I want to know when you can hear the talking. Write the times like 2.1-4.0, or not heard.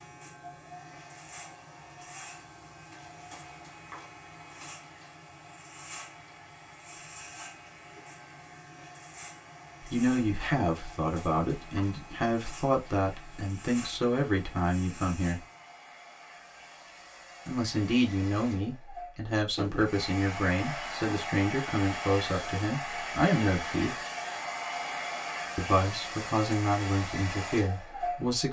9.8-15.4, 17.4-23.9, 25.6-28.4.